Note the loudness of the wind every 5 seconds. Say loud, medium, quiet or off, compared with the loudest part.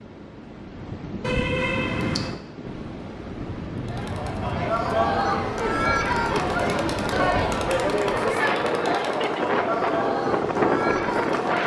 medium, medium, loud.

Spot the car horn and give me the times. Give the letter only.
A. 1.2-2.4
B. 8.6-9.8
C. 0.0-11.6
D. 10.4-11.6
A.